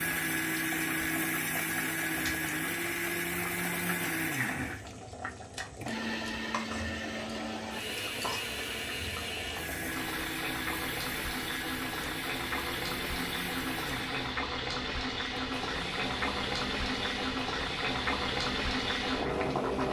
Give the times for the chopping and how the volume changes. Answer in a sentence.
The chopping can't be heard in this clip.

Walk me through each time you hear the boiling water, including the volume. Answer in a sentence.
You can hear the boiling water from 0.0 to 19.8 s, getting louder.